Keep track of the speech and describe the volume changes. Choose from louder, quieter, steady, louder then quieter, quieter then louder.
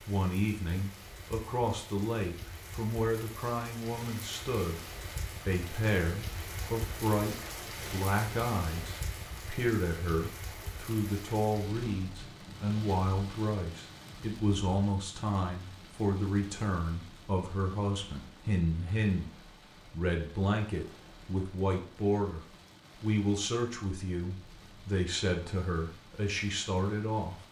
steady.